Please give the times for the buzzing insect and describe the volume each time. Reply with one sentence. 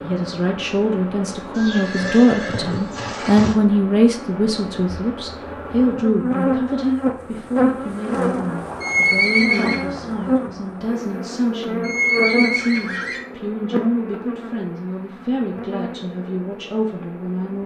The buzzing insect can be heard from 0.0 to 17.6 s, getting louder then quieter.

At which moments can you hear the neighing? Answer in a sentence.
The neighing can be heard from 1.6 to 3.5 s, from 8.8 to 9.8 s and from 11.8 to 13.2 s.